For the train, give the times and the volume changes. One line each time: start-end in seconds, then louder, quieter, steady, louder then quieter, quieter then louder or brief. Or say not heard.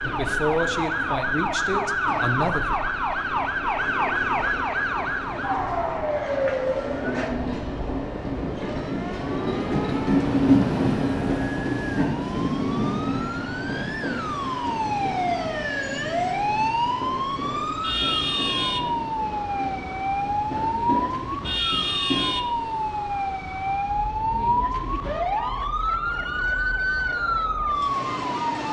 0.0-28.6 louder then quieter.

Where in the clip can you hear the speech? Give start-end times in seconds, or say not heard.
0.0-2.8.